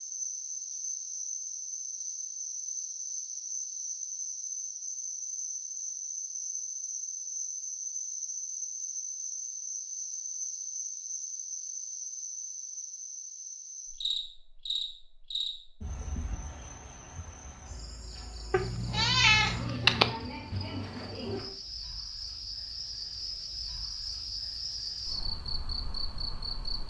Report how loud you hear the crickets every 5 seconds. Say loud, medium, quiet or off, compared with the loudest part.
loud, loud, loud, medium, loud, loud.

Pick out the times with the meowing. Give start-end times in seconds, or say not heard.
18.5-20.1.